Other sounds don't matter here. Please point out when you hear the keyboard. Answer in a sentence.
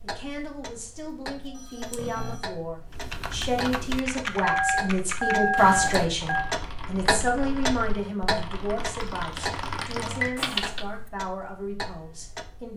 The keyboard can be heard from 2.9 to 10.8 s.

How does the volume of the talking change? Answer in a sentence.
The volume of the talking goes up, then down.